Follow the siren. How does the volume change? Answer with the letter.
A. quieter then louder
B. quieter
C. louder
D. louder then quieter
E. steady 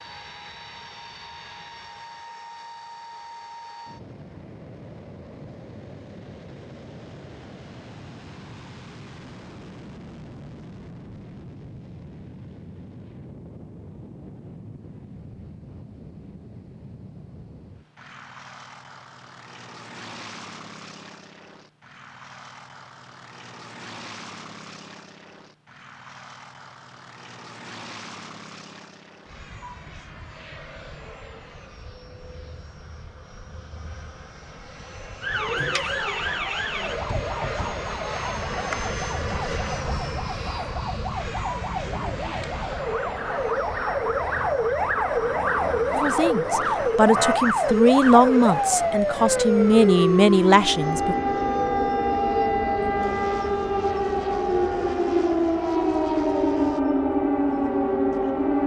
C.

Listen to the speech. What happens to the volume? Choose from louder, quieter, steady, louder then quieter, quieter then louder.
steady.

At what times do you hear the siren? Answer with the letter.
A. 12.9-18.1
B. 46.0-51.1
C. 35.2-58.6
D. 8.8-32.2
C.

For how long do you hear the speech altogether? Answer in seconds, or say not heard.
5 s.